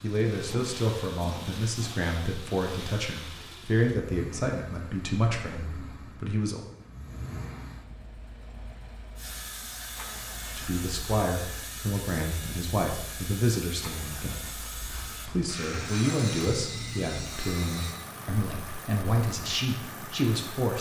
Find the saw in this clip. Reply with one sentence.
You can hear the saw from 9.2 to 18.0 s.